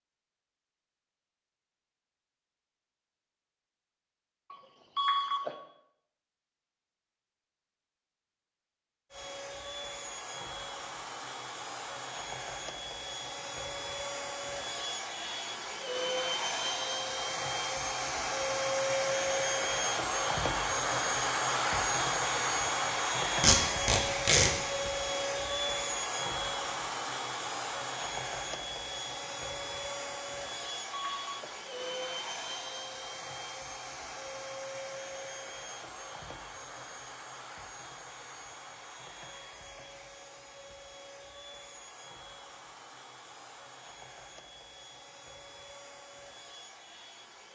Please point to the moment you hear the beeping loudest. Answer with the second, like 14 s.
5 s.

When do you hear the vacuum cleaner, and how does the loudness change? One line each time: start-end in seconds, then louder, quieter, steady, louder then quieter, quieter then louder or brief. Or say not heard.
9.1-47.5 louder then quieter.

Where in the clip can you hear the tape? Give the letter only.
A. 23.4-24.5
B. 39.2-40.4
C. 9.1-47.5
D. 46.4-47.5
A.